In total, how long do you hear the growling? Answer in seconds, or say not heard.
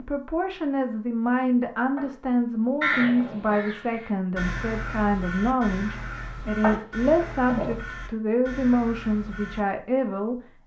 3 s.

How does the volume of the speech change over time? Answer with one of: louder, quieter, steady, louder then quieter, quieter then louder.
steady.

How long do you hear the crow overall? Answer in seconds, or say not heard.
7 s.